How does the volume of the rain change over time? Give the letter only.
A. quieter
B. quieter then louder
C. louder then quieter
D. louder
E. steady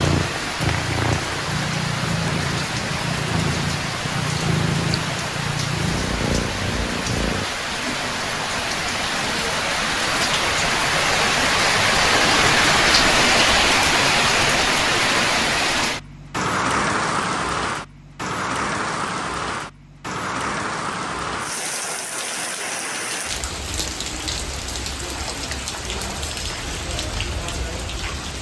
C.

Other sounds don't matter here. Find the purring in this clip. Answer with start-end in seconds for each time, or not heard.
0.0-7.5.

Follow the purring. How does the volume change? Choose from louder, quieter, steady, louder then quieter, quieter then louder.
steady.